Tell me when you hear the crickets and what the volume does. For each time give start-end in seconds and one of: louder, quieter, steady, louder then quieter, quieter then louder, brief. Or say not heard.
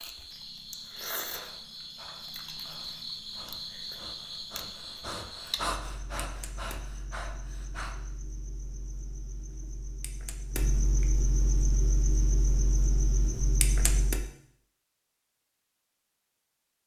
0.0-14.3 quieter then louder.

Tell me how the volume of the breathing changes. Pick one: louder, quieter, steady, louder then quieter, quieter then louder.
louder then quieter.